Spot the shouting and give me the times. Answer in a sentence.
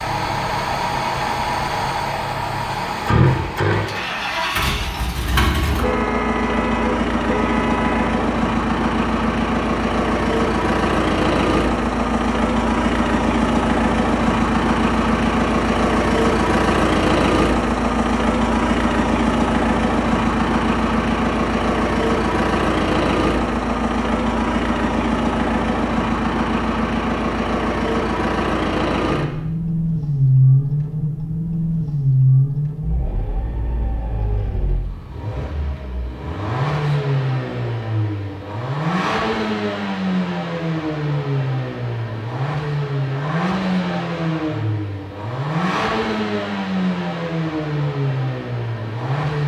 You can't hear the shouting here.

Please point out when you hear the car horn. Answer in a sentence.
You can hear the car horn from 5.8 to 8.2 s.